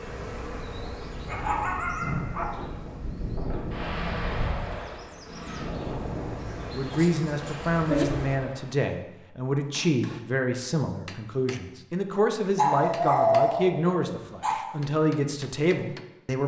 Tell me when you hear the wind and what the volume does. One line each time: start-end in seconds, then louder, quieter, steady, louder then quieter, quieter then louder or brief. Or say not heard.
0.0-8.8 louder then quieter.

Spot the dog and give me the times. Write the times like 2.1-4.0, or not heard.
0.8-2.6, 6.9-8.1, 12.6-14.6.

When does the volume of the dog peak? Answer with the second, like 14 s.
13 s.